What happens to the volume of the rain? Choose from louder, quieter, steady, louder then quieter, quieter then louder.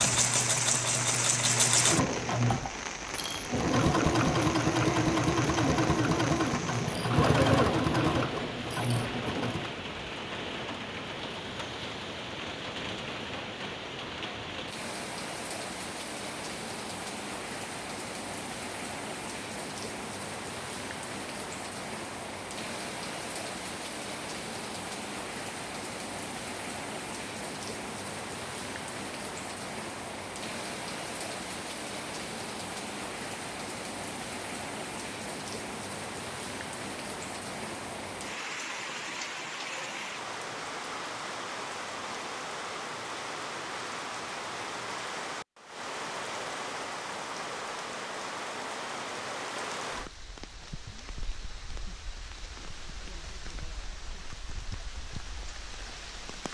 steady.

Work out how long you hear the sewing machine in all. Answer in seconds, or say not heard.
10 s.